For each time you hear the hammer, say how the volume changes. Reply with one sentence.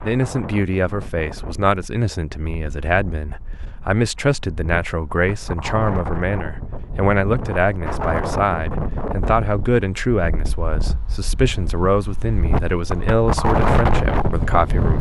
You can't hear the hammer here.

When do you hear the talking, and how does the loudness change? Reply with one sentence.
The talking can be heard from 0.0 to 14.9 s, at a steady volume.